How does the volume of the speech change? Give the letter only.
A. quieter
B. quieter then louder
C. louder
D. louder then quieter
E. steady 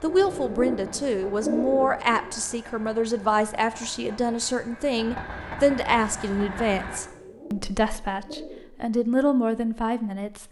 E.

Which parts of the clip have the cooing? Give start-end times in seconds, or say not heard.
0.1-2.3, 6.8-8.6.